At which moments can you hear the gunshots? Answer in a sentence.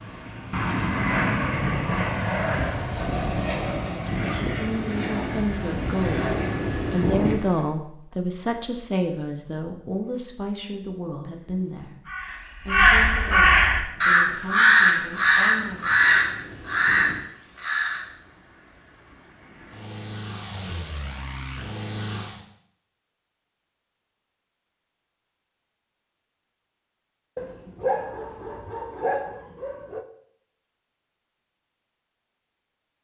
The gunshots can't be heard in this clip.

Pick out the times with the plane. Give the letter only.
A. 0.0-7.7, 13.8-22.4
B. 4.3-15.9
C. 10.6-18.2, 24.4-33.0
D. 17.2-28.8
A.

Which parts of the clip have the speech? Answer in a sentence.
The speech can be heard from 4.3 to 15.9 s.